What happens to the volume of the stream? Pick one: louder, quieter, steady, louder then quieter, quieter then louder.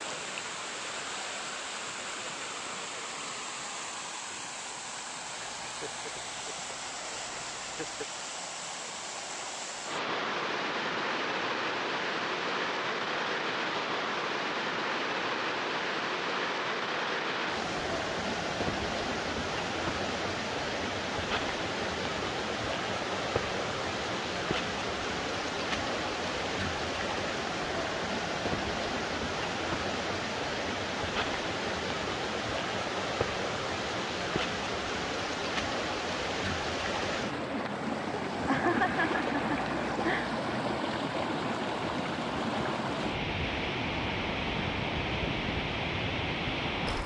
louder.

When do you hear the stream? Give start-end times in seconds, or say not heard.
0.0-47.0.